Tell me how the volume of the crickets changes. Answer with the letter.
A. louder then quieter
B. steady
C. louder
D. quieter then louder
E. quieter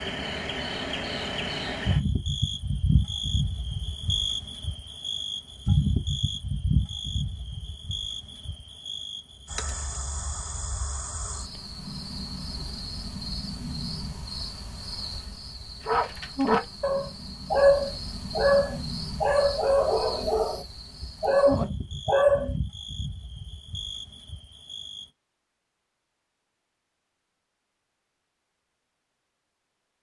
E.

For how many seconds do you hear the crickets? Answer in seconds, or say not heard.
25 s.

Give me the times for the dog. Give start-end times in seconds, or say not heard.
15.8-22.6.